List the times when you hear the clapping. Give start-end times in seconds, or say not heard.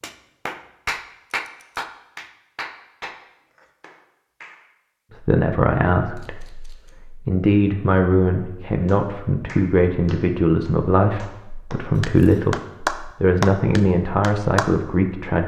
0.0-4.7, 8.8-14.8.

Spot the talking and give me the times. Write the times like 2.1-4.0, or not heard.
5.2-15.4.